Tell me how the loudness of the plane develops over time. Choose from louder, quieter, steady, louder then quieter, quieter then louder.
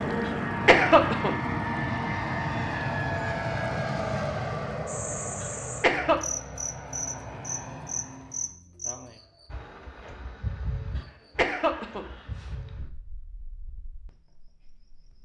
quieter.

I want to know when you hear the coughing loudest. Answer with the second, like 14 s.
1 s.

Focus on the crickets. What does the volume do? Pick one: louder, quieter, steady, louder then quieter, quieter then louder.
quieter.